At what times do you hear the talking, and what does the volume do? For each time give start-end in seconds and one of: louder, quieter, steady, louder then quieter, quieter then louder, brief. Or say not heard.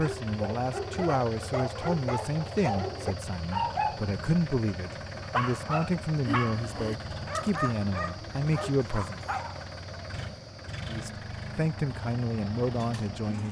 0.0-9.2 steady
10.8-13.4 brief.